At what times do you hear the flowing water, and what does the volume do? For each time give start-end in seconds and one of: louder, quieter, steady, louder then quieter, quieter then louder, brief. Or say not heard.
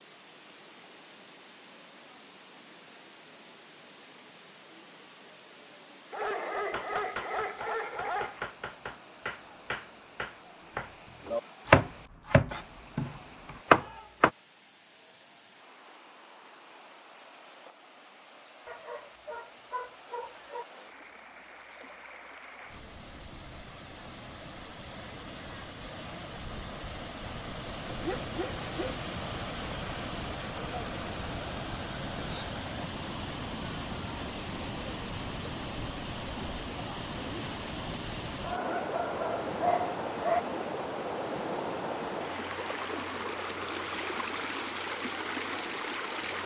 0.0-46.4 louder.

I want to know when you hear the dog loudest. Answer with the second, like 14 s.
40 s.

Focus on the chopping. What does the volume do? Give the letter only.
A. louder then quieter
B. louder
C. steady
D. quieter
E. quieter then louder
B.